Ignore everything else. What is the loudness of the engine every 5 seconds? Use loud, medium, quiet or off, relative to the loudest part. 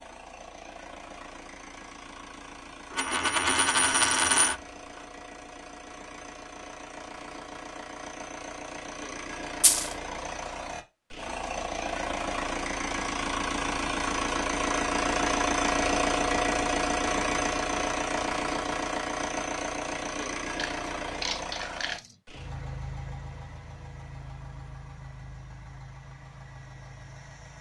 quiet, quiet, loud, loud, medium, quiet.